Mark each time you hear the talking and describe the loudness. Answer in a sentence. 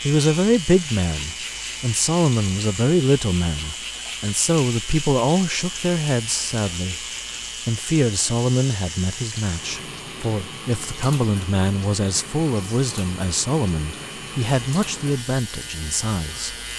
You can hear the talking from 0.0 to 7.0 s, at a steady volume; and from 7.7 to 16.6 s, at a steady volume.